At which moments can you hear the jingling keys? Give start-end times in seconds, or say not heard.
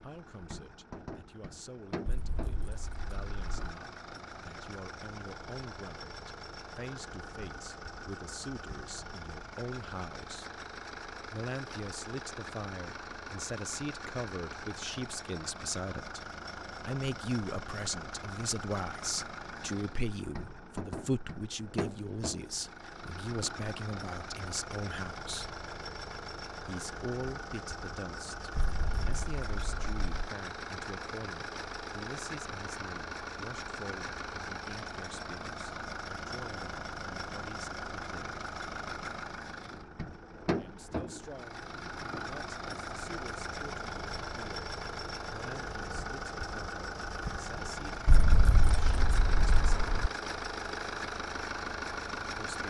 2.0-3.6, 28.6-30.3, 48.0-50.1.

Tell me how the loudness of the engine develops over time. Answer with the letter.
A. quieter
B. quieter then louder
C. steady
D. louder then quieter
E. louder
E.